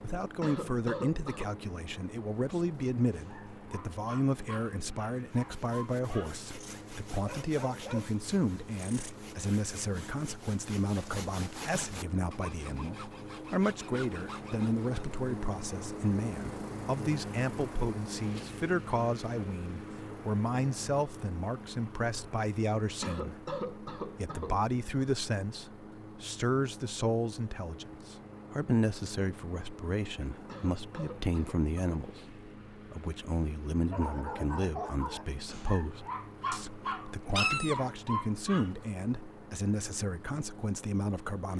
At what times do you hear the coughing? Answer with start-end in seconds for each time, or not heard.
0.4-1.6, 23.0-24.6, 30.4-32.0.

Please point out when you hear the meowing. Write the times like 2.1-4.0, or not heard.
37.4-37.9.